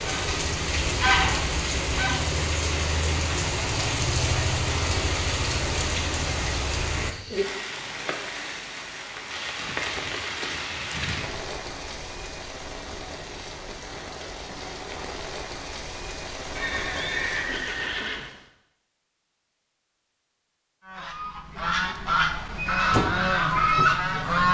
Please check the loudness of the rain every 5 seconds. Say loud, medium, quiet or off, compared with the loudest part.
loud, loud, medium, medium, off.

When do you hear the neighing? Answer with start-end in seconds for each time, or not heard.
16.6-18.3.